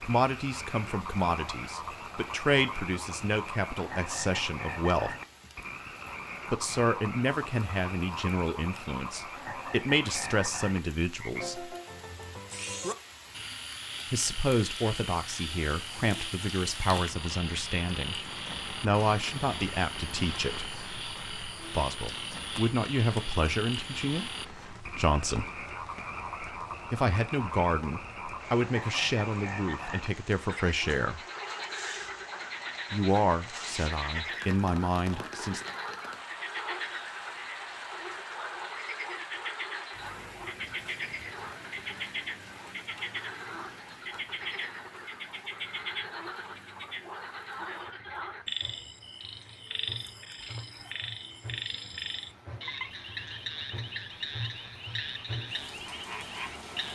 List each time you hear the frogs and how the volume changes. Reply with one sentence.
You can hear the frogs from 0.0 to 56.9 s, at a steady volume.